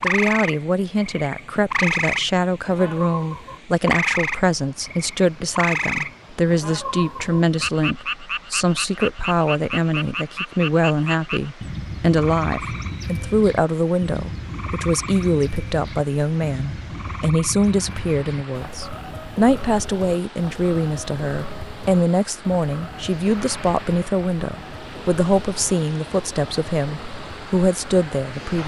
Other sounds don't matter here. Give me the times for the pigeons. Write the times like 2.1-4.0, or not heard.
not heard.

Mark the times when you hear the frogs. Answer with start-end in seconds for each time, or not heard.
0.0-28.6.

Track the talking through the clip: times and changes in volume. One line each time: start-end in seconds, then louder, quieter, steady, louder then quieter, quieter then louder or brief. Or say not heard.
0.0-28.6 steady.